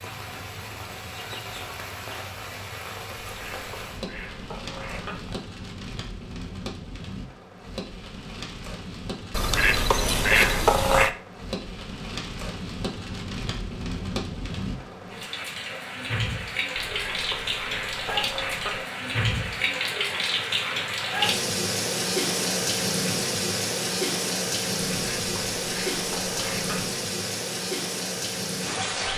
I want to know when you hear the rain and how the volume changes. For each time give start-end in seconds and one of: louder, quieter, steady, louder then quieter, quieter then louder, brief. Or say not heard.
0.0-29.1 louder.